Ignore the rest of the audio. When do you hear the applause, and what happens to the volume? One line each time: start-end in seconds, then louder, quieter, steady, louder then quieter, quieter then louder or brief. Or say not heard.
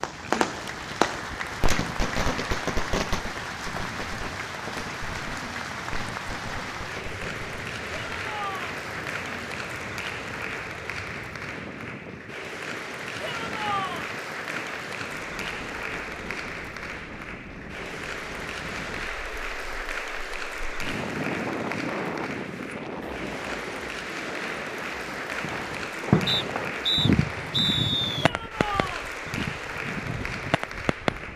0.0-31.3 steady.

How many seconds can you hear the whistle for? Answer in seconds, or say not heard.
2 s.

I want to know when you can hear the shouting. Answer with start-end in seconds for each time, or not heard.
7.9-8.8, 13.2-14.1, 28.2-29.1.